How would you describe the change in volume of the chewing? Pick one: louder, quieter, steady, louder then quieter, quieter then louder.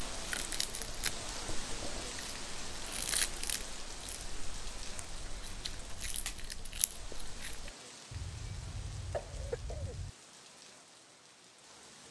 quieter then louder.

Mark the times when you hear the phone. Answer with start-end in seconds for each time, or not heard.
not heard.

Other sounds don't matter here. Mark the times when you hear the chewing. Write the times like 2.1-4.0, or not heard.
0.1-7.7.